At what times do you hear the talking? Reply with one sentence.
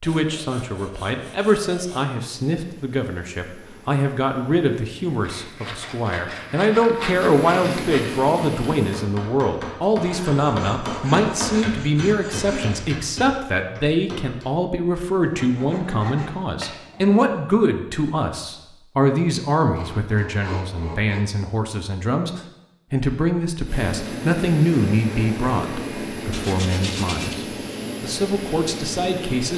You can hear the talking from 0.0 to 29.5 s.